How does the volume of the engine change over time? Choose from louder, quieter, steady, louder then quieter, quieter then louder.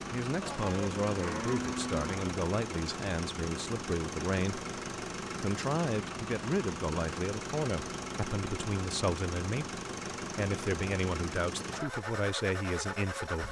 steady.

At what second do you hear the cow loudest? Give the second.
2 s.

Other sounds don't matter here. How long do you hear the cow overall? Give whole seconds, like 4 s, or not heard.
2 s.